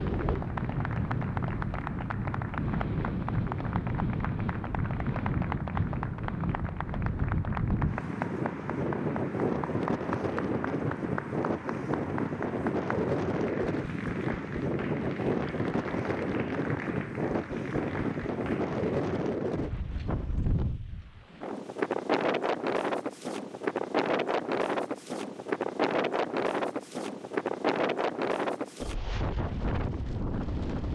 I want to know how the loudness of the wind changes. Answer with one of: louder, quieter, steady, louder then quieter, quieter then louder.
steady.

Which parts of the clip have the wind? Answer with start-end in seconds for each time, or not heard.
0.0-30.9.